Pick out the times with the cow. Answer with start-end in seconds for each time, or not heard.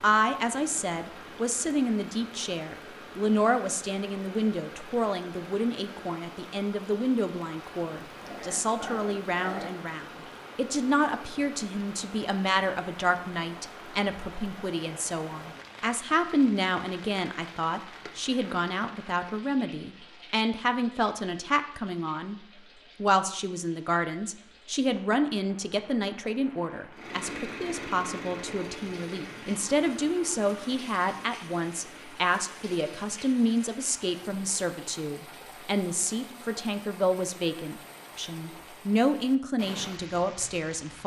not heard.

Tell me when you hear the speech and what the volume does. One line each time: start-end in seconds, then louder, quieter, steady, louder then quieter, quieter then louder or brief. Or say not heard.
0.0-41.0 steady.